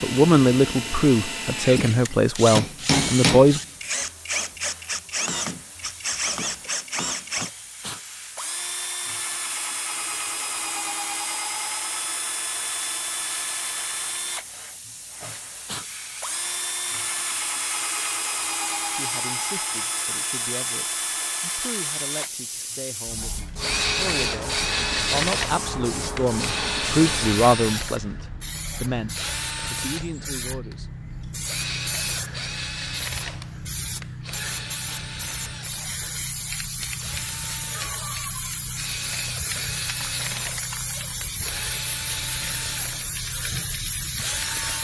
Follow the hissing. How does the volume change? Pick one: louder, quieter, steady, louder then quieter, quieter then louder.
louder.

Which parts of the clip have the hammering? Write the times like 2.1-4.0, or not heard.
2.1-3.6.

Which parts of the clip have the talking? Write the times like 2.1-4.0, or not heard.
0.0-3.6, 18.9-30.9.